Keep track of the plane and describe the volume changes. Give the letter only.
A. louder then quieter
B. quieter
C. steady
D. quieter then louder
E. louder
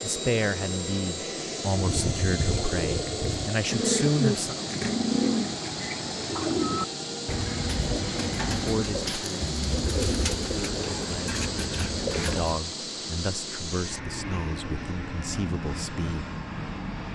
C.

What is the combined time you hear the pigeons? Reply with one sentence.
You can hear the pigeons for 11 seconds altogether.